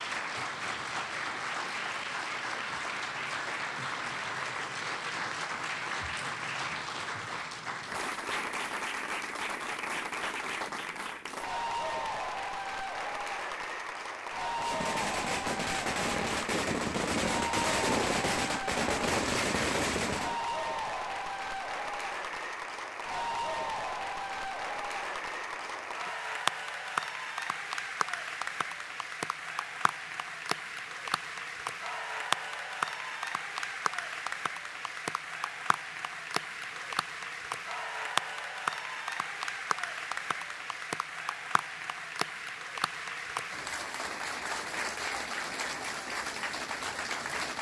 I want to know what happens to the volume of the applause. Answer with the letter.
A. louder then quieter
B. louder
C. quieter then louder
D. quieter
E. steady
E.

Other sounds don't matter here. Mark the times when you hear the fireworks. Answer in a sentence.
You can hear the fireworks from 14.6 to 20.4 s.